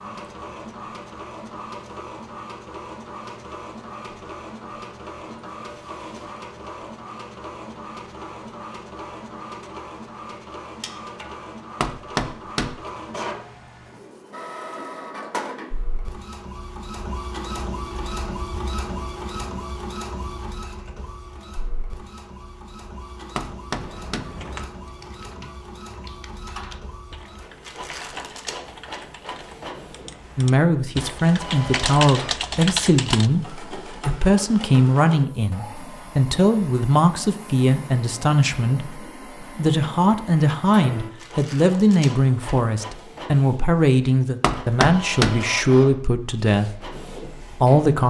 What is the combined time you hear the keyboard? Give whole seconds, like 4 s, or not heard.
10 s.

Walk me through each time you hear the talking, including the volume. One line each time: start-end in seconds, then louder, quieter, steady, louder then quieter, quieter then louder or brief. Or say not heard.
30.4-48.0 steady.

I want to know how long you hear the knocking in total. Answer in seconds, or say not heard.
3 s.